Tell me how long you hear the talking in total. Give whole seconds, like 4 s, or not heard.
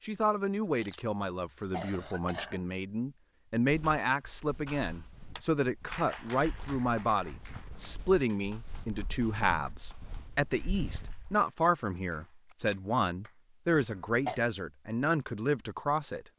16 s.